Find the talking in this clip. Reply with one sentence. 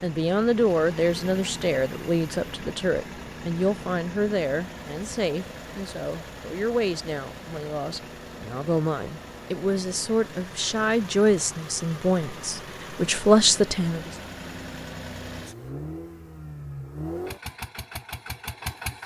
The talking can be heard from 0.0 to 14.1 s.